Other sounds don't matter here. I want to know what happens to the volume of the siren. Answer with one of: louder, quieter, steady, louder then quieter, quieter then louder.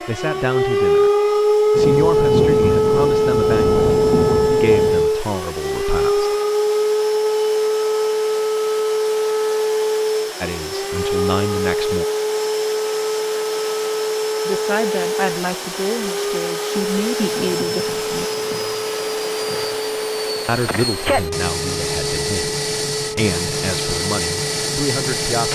quieter.